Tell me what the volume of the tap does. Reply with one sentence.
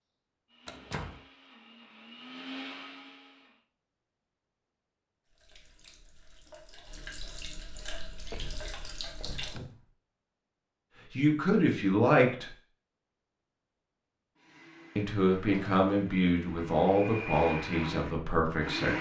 The volume of the tap goes up.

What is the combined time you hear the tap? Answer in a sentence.
The tap can be heard for 4 seconds in total.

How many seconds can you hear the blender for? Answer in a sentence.
The blender can be heard for 8 seconds in total.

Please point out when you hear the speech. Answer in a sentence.
You can hear the speech from 11.1 to 12.5 s and from 14.9 to 18.9 s.